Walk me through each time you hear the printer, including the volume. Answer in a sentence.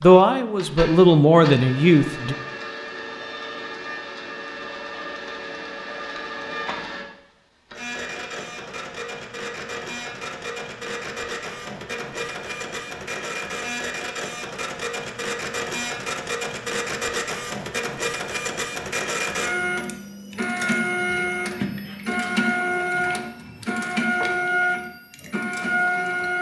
The printer can be heard from 0.0 to 26.3 s, getting louder.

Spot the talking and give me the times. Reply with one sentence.
The talking can be heard from 0.0 to 2.4 s.